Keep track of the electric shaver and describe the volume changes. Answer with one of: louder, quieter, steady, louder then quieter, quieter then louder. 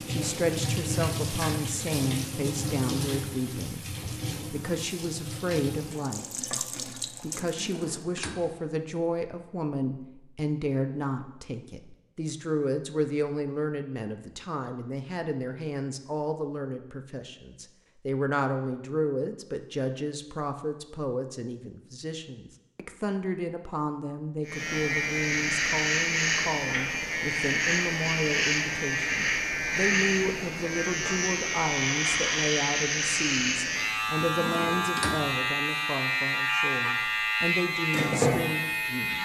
steady.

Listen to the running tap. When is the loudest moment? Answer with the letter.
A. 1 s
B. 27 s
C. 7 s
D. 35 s
A.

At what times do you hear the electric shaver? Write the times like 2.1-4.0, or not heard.
24.4-39.2.